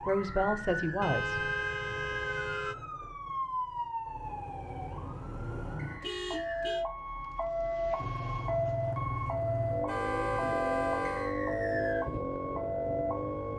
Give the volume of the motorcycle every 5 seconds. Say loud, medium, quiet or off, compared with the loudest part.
off, loud, loud.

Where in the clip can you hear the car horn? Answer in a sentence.
You can hear the car horn from 1.0 to 2.8 s, from 6.0 to 6.8 s and from 9.8 to 11.3 s.